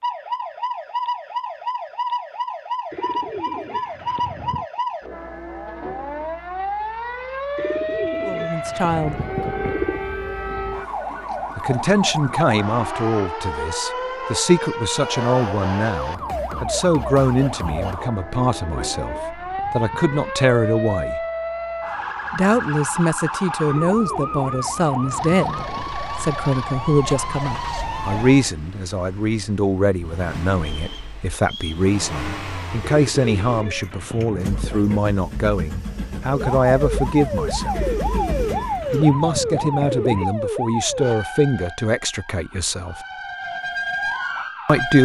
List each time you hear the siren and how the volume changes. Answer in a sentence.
You can hear the siren from 0.0 to 28.5 s, at a steady volume; and from 36.2 to 45.0 s, getting quieter then louder.